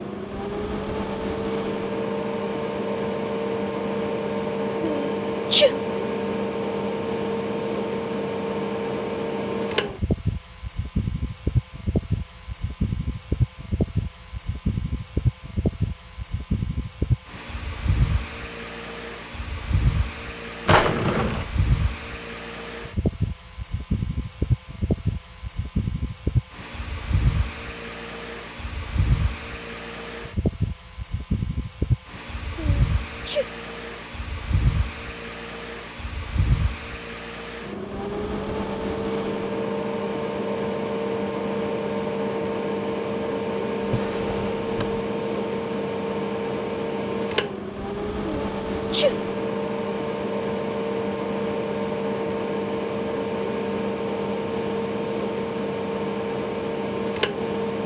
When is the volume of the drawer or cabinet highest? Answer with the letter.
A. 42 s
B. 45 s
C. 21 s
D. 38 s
C.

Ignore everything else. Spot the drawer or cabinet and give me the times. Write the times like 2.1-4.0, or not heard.
20.6-21.5, 43.8-45.0.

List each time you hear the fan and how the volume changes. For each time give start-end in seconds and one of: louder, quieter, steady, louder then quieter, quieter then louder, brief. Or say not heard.
0.0-57.8 steady.